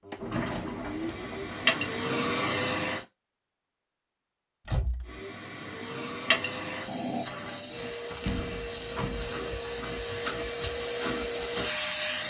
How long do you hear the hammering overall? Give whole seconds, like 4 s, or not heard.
not heard.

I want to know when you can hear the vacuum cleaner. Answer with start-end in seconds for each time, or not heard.
0.0-3.0, 5.0-12.2.